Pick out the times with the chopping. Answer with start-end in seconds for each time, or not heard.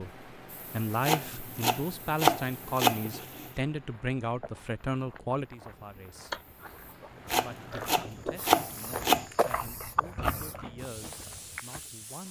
1.0-3.5, 7.3-9.2.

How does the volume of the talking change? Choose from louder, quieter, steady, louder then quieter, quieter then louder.
quieter.